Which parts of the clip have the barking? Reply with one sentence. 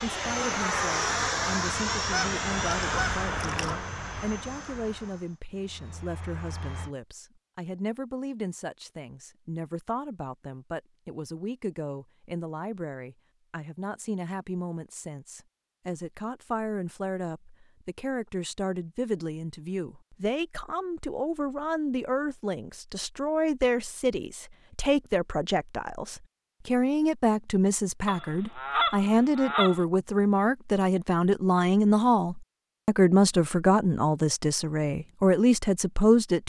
The barking can't be heard in this clip.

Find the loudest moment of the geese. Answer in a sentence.
The loudest moment of the geese is at 29 seconds.